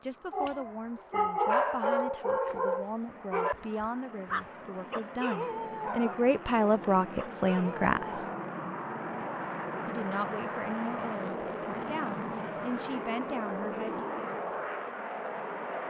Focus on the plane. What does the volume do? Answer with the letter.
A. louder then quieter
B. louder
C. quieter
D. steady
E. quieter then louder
B.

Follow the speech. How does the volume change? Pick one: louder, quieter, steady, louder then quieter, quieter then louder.
louder then quieter.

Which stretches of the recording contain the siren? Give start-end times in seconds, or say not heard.
not heard.